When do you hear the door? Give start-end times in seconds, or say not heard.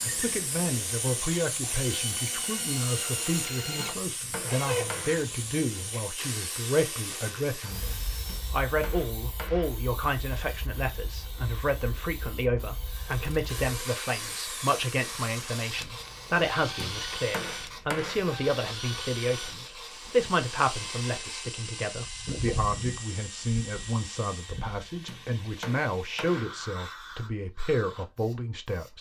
not heard.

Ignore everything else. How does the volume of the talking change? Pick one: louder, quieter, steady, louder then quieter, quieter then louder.
steady.